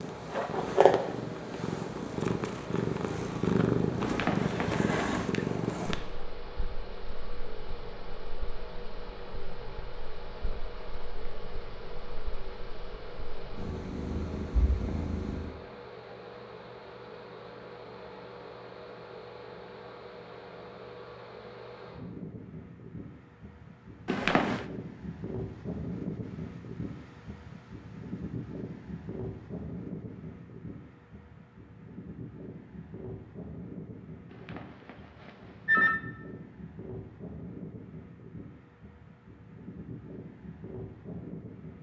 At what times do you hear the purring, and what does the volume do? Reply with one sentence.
You can hear the purring from 0.0 to 15.6 s, getting quieter then louder.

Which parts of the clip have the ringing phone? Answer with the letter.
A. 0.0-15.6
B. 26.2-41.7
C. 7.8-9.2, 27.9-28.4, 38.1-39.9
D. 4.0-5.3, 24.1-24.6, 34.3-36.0
D.